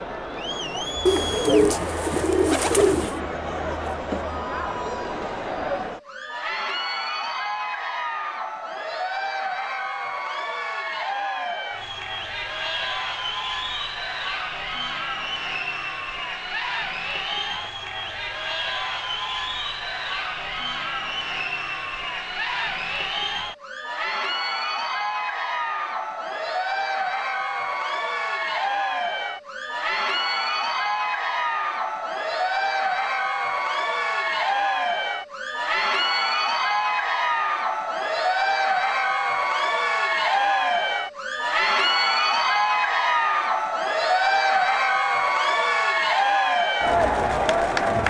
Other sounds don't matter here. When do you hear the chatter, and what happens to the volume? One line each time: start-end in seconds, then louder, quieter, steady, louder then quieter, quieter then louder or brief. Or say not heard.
0.0-48.0 louder.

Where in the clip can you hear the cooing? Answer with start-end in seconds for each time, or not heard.
1.1-3.2.